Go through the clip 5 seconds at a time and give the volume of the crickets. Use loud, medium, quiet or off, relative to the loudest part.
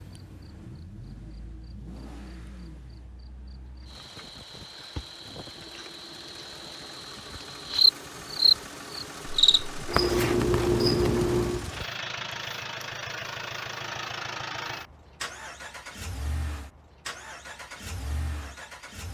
quiet, loud, loud, off.